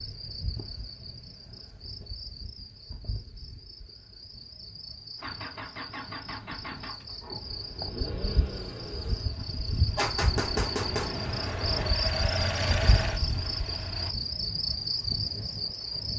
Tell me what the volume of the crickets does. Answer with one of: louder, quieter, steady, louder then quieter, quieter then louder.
louder.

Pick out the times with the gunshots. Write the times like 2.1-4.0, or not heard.
9.9-11.9.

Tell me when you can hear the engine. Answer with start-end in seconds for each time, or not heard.
5.2-14.2.